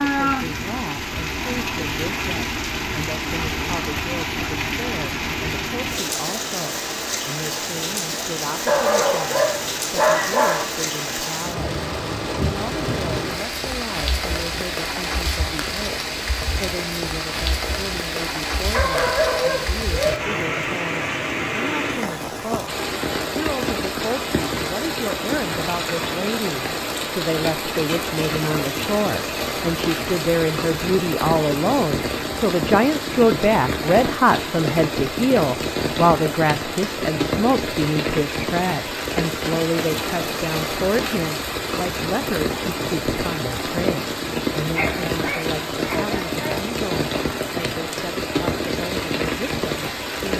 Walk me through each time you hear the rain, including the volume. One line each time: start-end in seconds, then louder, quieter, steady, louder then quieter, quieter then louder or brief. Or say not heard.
0.0-50.3 steady.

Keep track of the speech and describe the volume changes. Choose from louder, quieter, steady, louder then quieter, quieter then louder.
louder then quieter.